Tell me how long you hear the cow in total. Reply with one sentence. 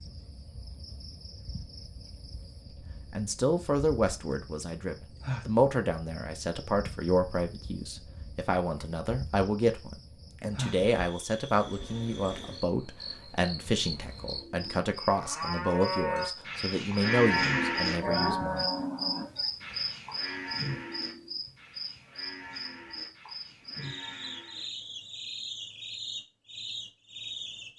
The cow can be heard for 10 seconds in total.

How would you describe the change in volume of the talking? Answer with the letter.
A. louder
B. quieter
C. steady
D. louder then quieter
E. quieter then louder
C.